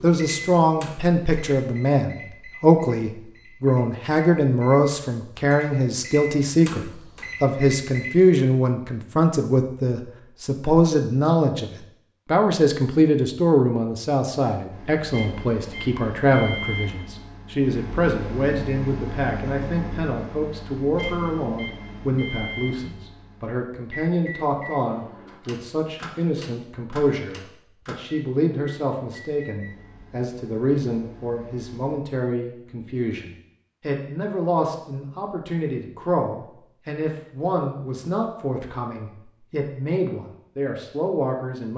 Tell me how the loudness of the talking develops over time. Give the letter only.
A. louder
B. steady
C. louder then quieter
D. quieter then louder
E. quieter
E.